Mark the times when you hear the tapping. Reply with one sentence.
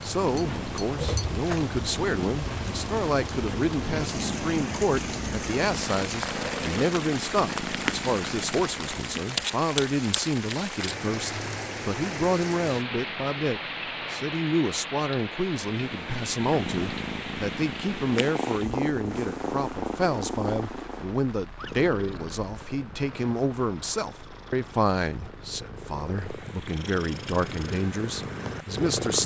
You can hear the tapping from 0.0 to 1.7 s.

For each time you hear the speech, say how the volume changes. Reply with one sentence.
You can hear the speech from 0.0 to 29.2 s, at a steady volume.